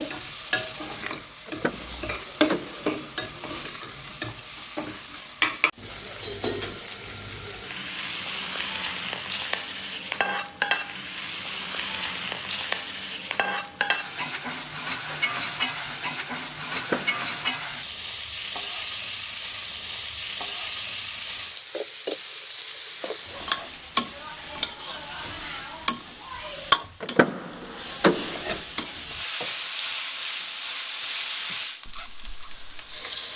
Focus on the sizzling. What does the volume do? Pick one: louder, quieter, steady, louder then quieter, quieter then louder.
steady.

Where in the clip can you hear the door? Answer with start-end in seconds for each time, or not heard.
1.4-2.9, 16.8-17.4, 27.0-28.4.